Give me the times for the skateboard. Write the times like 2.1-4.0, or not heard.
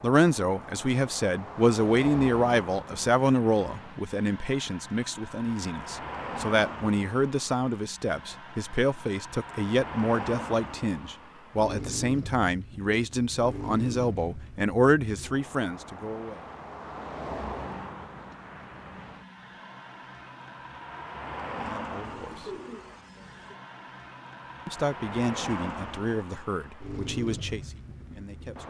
not heard.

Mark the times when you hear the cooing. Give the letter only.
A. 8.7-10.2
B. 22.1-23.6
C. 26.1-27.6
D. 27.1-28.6
B.